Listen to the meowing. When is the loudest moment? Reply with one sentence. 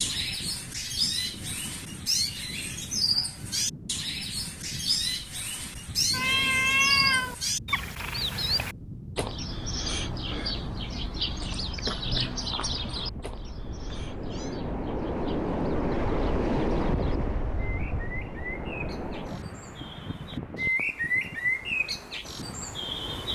The loudest moment of the meowing is at 7 seconds.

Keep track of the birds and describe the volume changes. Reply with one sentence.
The volume of the birds goes down, then up.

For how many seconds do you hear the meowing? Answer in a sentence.
The meowing can be heard for 2 seconds in total.